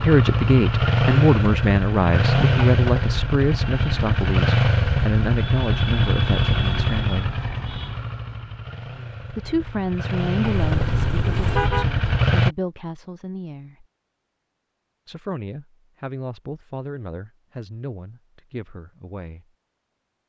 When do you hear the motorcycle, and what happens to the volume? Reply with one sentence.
The motorcycle can be heard from 0.0 to 12.6 s, getting quieter then louder.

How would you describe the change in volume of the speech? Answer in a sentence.
The loudness of the speech goes down.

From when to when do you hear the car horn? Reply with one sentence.
You can hear the car horn from 10.4 to 11.8 s.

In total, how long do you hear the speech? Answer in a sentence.
You can hear the speech for 16 seconds altogether.